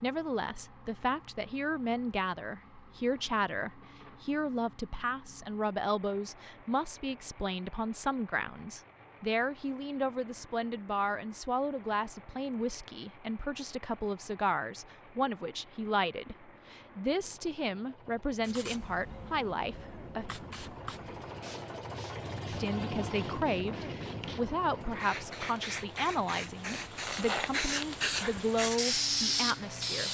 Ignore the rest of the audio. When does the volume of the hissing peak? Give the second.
29 s.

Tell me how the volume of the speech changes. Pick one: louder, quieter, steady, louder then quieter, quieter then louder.
steady.